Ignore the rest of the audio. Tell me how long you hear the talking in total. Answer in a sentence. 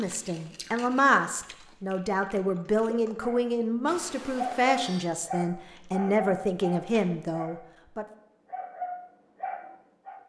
You can hear the talking for 8 seconds altogether.